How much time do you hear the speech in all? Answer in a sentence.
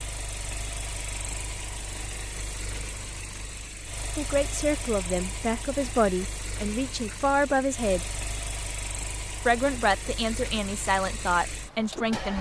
You can hear the speech for 7 seconds altogether.